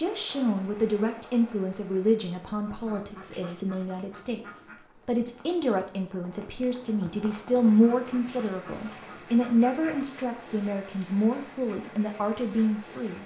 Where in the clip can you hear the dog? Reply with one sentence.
You can't hear the dog here.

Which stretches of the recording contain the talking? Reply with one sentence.
The talking can be heard from 0.0 to 13.2 s.